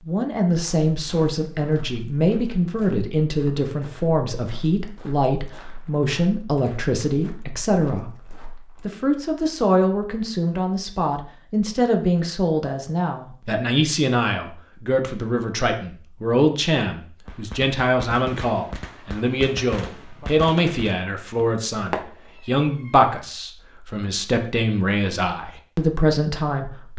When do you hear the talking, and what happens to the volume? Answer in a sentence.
The talking can be heard from 0.1 to 8.1 s, at a steady volume; and from 8.8 to 26.9 s, at a steady volume.